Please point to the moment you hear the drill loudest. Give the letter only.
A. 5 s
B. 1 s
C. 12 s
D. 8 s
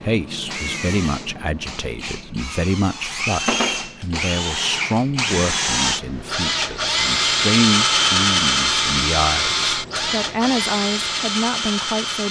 D.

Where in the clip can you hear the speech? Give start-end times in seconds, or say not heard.
0.0-12.2.